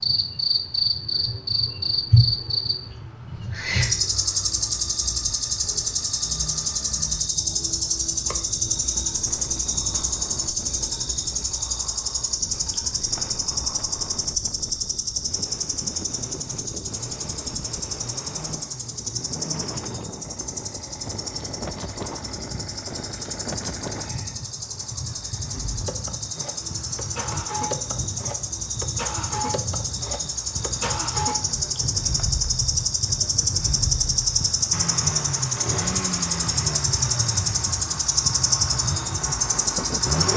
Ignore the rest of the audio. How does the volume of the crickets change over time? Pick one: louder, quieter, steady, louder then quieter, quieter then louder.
quieter then louder.